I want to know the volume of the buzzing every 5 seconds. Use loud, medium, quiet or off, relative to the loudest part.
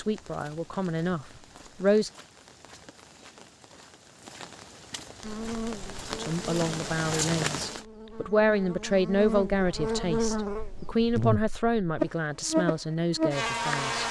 off, medium, loud.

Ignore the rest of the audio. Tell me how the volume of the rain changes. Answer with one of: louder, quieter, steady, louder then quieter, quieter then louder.
louder.